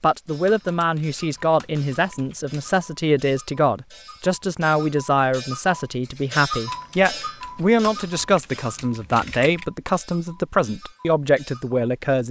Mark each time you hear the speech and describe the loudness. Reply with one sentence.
You can hear the speech from 0.0 to 12.2 s, at a steady volume.